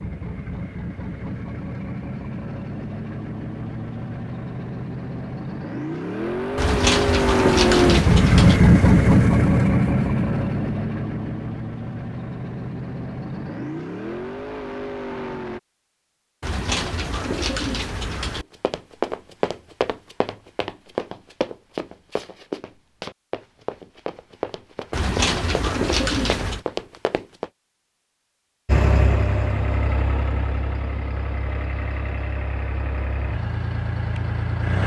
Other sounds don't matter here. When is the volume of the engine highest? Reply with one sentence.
The volume of the engine peaks at 9 seconds.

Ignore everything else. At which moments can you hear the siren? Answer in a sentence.
You can't hear the siren here.